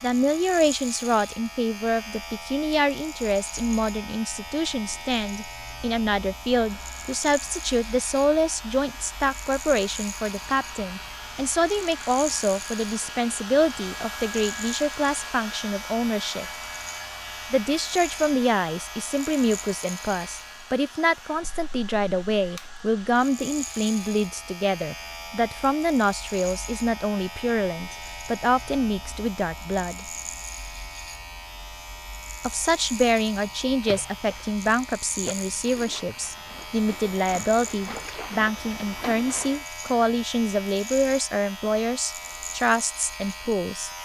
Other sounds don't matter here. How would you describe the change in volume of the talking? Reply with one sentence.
The volume of the talking stays about the same.